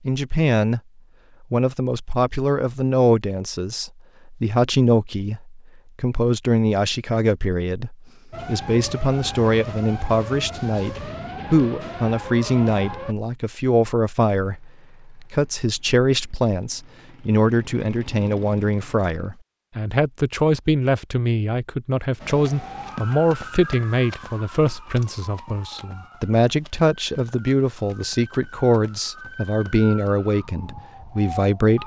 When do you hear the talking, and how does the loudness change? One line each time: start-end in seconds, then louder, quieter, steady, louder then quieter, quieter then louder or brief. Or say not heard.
0.1-0.8 brief
1.5-31.8 steady.